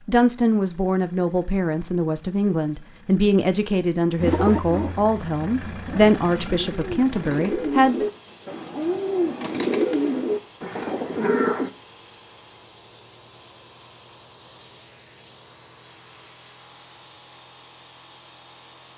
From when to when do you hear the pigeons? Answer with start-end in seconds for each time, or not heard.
4.2-11.7.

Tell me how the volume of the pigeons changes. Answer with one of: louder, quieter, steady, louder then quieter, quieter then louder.
louder.